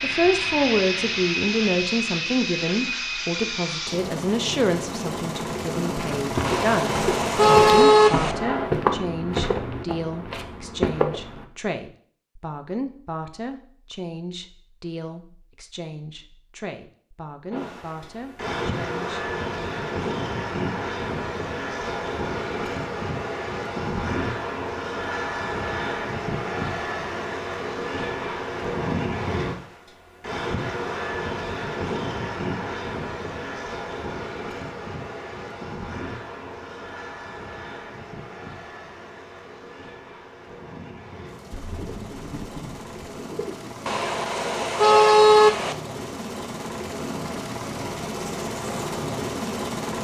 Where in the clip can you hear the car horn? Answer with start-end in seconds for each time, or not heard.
6.4-8.3, 43.9-45.8.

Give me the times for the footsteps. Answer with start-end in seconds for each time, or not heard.
6.0-11.4.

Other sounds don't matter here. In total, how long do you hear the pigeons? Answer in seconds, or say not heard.
2 s.